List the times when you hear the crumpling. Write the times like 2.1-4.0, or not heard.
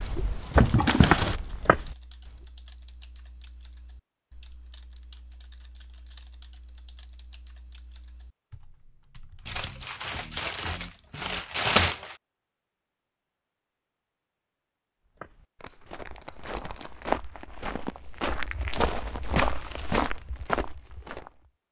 0.5-1.4, 9.4-12.2, 15.6-17.2.